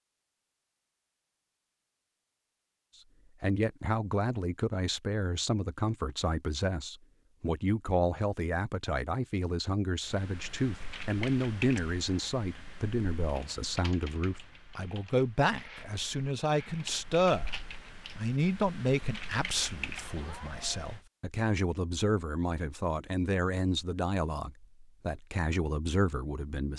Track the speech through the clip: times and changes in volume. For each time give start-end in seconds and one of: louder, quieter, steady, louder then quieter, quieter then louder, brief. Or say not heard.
3.4-17.6 steady
18.1-26.7 steady.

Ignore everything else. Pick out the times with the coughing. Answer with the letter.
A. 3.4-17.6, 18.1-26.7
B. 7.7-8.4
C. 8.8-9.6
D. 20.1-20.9
D.